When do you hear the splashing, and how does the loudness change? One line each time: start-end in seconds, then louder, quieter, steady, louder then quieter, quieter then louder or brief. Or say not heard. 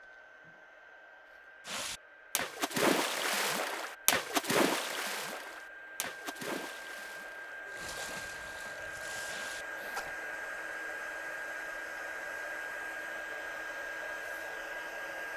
1.6-10.2 quieter.